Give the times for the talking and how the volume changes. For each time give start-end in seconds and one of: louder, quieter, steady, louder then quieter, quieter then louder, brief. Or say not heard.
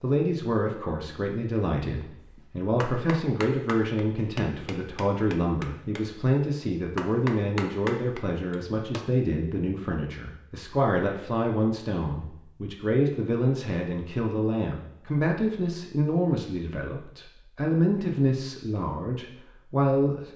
0.0-20.3 steady.